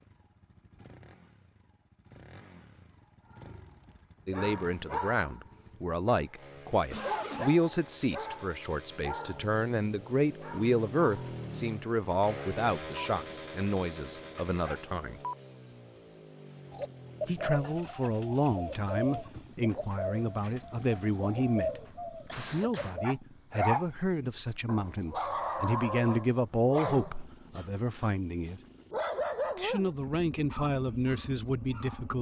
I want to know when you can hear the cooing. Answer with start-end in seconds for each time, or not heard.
16.7-23.1.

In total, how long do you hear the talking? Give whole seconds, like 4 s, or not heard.
25 s.